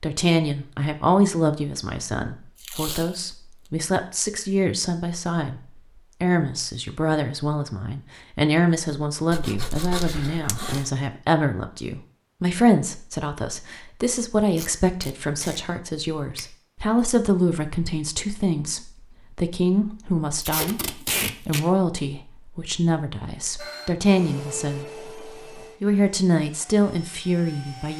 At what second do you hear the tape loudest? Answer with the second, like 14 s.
21 s.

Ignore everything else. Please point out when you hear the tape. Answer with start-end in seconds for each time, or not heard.
2.6-3.1, 14.6-15.6, 20.4-21.6.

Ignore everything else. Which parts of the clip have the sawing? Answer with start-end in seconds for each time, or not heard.
9.3-10.9.